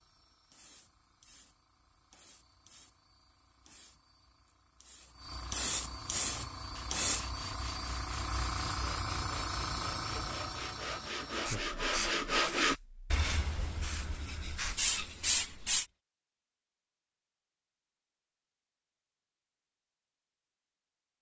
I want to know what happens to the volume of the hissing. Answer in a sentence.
The volume of the hissing goes up.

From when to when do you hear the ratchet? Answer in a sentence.
The ratchet can't be heard in this clip.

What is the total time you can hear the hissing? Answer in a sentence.
The hissing can be heard for 16 seconds in total.